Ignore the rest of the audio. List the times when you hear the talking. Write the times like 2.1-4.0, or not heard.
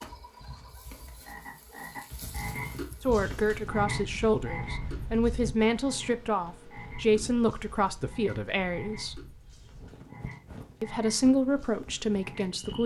3.0-9.2, 10.8-12.8.